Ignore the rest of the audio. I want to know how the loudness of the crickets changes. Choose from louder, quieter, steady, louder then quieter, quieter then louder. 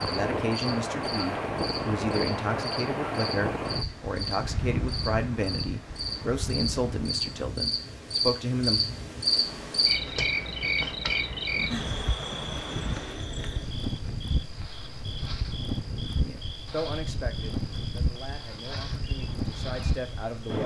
louder then quieter.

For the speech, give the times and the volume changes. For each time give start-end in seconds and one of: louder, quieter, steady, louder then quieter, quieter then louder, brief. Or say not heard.
0.1-8.8 steady
16.0-20.6 quieter then louder.